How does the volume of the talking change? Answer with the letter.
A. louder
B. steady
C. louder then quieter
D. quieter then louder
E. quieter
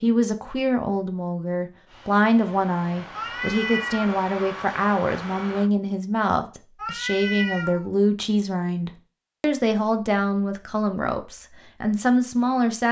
B.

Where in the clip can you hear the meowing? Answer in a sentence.
The meowing can be heard from 3.1 to 4.2 s and from 6.8 to 7.9 s.